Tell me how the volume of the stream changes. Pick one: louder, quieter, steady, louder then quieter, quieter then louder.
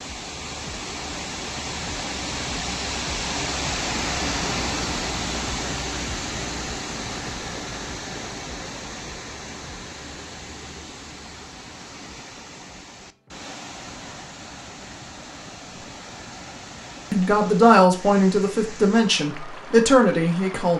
quieter.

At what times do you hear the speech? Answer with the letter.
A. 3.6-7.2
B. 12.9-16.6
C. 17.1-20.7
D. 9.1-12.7
C.